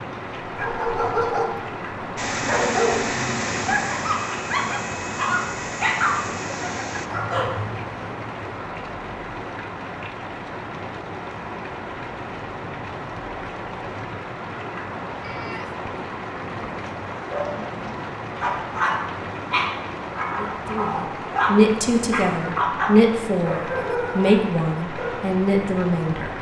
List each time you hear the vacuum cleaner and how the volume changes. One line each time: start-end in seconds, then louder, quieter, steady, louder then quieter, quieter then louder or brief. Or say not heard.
2.1-7.1 quieter.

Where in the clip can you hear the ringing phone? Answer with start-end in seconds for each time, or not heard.
not heard.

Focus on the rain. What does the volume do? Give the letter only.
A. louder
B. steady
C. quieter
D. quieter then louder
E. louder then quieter
B.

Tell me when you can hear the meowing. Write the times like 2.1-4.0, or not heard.
15.2-15.8.